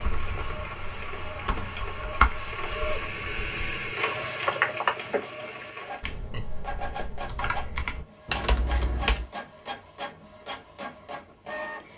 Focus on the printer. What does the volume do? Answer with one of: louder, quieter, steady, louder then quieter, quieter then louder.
louder then quieter.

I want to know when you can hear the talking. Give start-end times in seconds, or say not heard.
not heard.